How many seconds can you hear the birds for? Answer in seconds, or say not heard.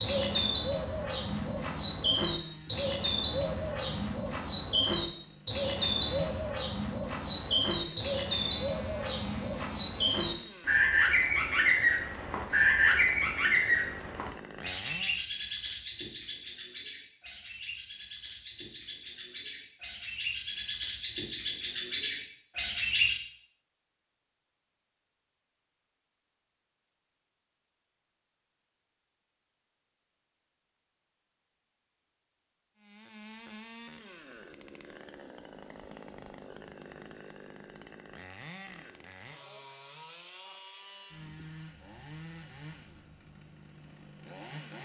23 s.